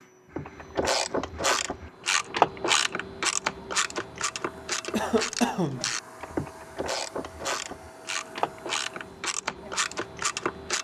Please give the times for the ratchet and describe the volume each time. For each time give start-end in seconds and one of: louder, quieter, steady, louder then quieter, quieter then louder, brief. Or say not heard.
0.3-10.7 quieter.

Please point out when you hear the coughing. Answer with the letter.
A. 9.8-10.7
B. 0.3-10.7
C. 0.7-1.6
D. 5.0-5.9
D.